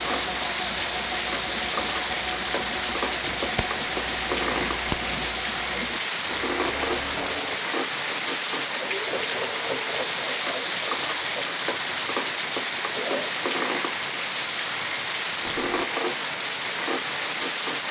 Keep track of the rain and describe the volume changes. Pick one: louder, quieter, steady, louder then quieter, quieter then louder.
steady.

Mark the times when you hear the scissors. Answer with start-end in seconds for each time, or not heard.
3.2-5.3, 15.4-15.8.